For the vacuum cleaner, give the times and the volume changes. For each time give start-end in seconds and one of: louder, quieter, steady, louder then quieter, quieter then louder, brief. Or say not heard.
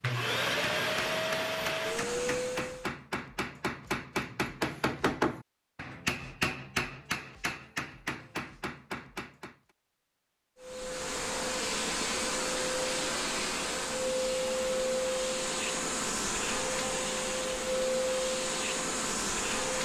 0.0-3.0 brief
10.6-19.7 steady.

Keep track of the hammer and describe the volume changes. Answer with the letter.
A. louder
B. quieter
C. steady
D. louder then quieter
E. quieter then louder
D.